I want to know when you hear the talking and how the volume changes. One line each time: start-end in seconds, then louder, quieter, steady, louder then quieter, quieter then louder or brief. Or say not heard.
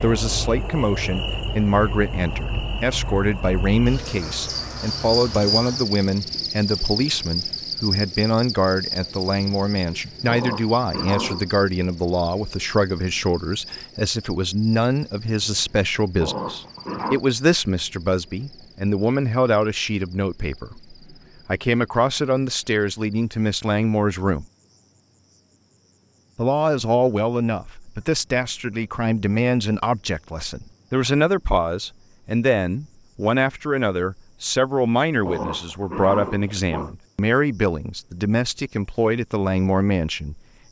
0.0-24.4 steady
26.4-40.4 steady.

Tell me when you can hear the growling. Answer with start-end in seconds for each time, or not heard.
10.2-11.4, 16.2-17.2, 35.2-37.0.